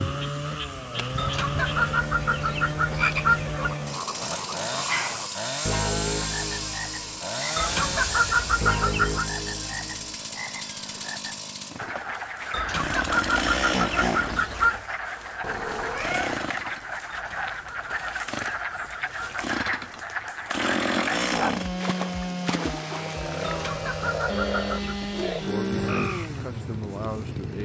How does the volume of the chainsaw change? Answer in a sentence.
The loudness of the chainsaw stays about the same.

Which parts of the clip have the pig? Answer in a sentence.
You can't hear the pig here.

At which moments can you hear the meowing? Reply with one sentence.
You can hear the meowing from 15.4 to 16.4 s.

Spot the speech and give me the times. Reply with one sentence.
You can hear the speech from 22.9 to 27.5 s.